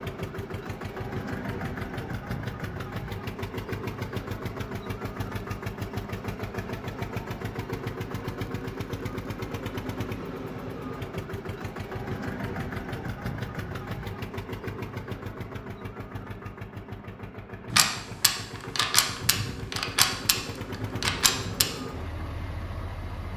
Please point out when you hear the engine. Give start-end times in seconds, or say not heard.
0.0-23.3.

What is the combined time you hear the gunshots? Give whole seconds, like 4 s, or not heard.
4 s.